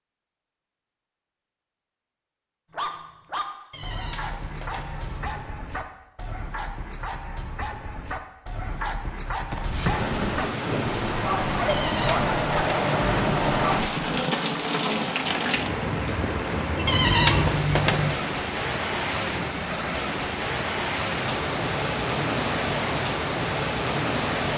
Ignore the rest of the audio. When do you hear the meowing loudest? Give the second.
17 s.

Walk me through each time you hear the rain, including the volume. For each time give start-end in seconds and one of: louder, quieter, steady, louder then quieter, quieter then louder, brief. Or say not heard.
9.4-24.5 steady.